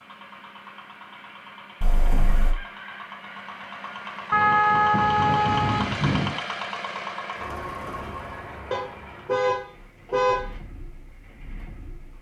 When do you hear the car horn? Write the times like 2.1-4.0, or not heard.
1.8-2.5, 4.3-6.3, 8.7-10.4.